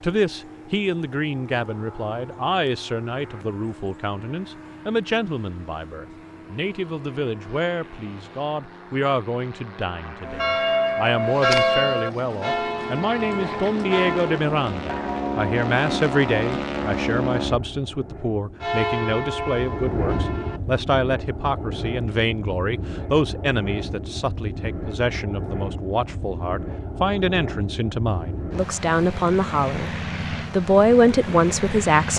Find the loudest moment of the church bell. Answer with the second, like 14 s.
12 s.